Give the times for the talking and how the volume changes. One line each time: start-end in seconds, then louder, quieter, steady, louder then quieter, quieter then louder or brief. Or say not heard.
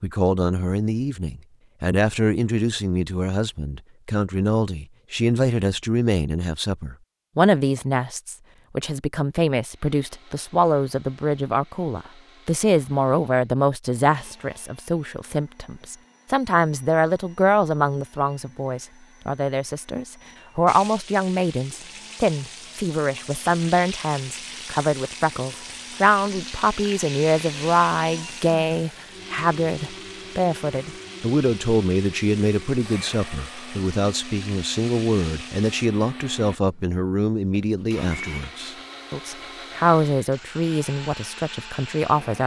0.0-42.4 steady.